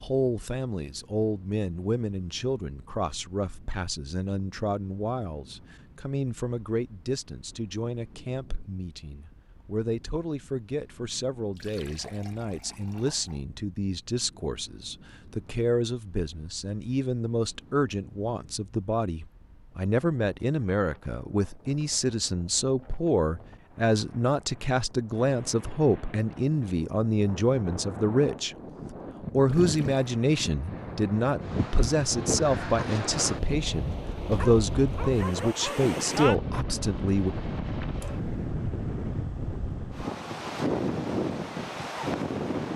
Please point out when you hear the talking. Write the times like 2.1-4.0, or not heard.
0.0-28.6, 29.3-37.4.